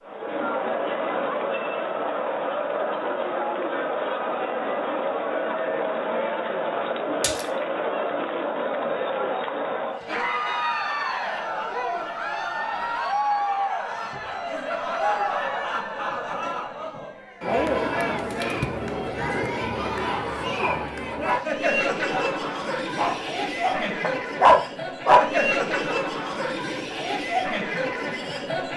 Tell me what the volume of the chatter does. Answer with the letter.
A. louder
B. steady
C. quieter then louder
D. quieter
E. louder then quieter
B.